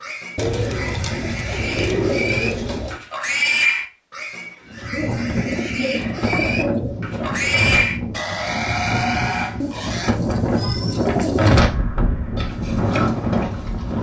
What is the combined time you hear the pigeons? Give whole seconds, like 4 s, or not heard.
7 s.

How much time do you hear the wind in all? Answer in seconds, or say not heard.
9 s.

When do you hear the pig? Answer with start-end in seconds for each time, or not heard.
0.0-10.2, 12.3-13.9.